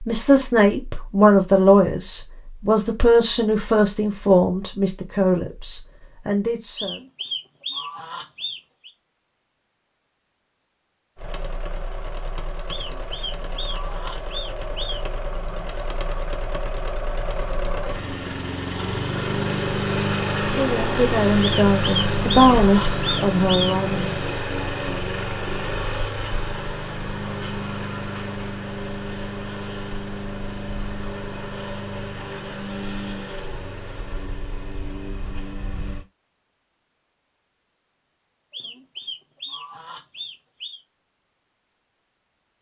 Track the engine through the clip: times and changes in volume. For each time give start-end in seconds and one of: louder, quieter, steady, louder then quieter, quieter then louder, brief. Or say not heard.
11.2-36.0 louder then quieter.